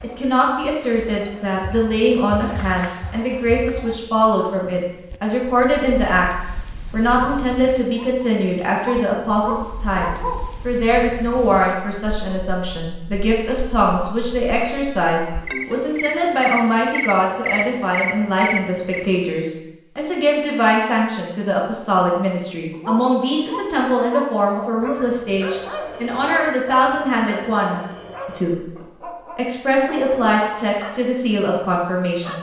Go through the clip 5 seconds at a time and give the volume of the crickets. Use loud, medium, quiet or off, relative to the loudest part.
loud, loud, loud, loud, off, off, off.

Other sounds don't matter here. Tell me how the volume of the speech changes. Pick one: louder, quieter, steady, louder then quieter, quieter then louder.
steady.